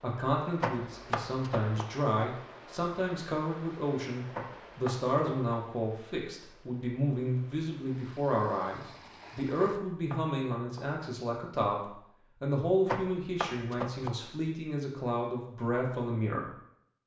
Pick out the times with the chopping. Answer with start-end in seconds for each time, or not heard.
0.6-1.9, 4.3-5.5, 9.6-10.8, 12.8-14.1.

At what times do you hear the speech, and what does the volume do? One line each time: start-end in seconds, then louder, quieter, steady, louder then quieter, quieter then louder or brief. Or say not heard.
0.0-16.5 steady.